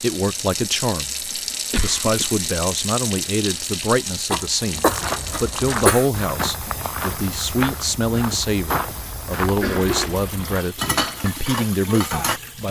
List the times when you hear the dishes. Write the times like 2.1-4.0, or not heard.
10.8-12.4.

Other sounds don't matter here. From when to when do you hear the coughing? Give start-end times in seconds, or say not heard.
0.7-2.4, 4.3-6.0, 9.6-10.2.